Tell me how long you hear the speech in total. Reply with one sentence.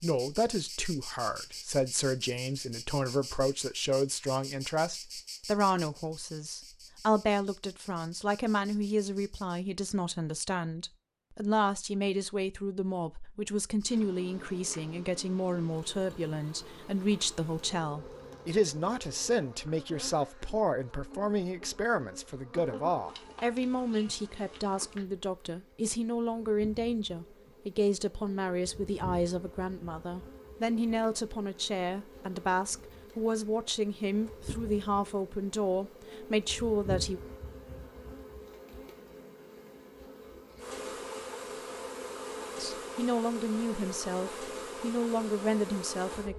You can hear the speech for 41 seconds altogether.